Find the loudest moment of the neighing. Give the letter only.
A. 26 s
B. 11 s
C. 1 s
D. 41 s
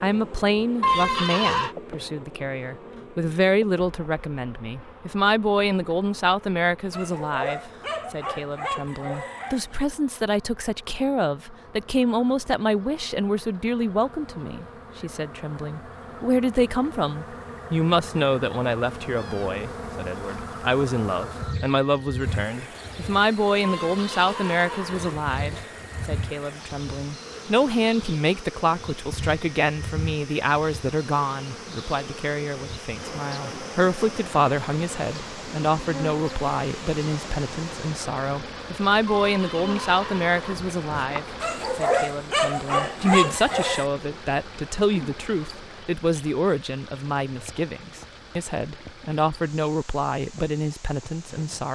C.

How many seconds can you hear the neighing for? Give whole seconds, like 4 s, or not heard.
5 s.